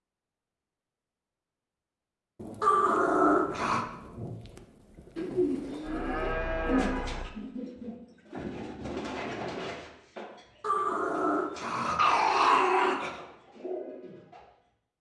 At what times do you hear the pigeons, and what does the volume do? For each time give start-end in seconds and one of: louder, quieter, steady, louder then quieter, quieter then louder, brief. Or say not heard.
5.2-14.4 quieter then louder.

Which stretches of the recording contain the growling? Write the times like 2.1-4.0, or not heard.
2.6-3.9, 10.6-13.2.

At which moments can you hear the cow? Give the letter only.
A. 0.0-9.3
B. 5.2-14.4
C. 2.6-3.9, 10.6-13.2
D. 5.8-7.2
D.